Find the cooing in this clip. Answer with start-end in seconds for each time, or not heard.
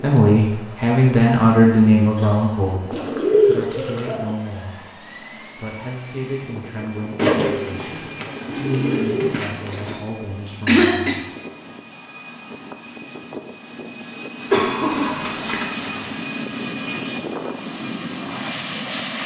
2.9-4.2, 7.2-10.0, 14.4-16.1.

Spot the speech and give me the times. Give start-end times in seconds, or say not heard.
0.0-11.1.